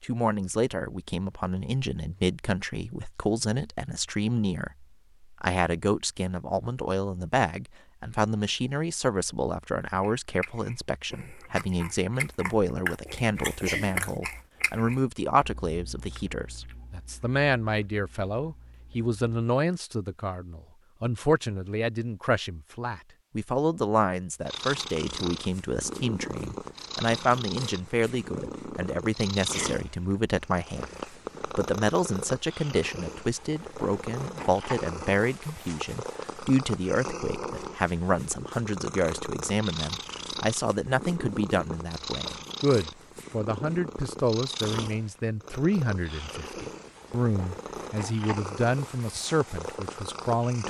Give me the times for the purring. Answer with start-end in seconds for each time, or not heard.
24.4-50.6.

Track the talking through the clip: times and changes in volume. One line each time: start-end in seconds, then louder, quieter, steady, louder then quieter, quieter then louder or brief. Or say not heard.
0.0-50.6 steady.